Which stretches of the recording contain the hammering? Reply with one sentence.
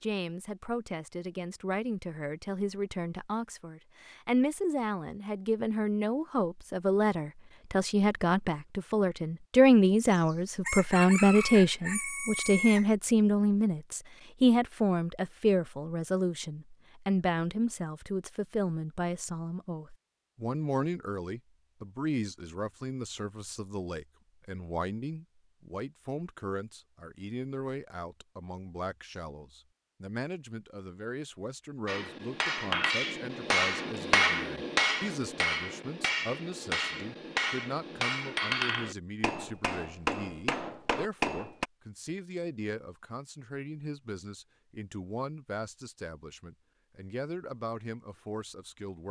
The hammering can be heard from 31.9 to 41.6 s.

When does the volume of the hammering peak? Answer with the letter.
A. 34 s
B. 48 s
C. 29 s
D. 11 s
A.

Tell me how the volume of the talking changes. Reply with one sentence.
The volume of the talking goes down.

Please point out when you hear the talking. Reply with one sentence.
The talking can be heard from 0.0 to 49.0 s.